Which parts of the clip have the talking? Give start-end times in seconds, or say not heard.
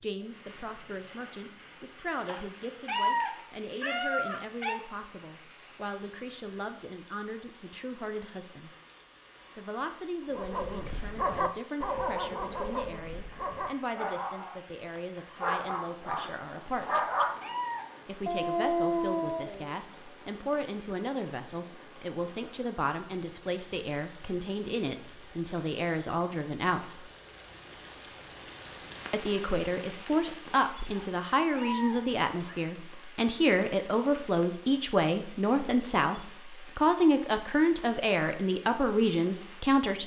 0.0-8.7, 9.6-17.1, 18.1-27.1, 29.1-40.0.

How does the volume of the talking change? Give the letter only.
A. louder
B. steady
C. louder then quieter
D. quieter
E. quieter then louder
A.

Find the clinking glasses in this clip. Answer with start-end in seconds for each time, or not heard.
not heard.